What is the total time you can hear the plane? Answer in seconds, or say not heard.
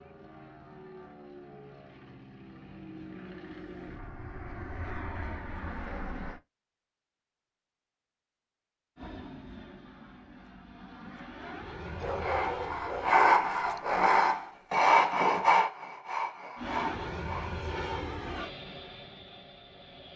14 s.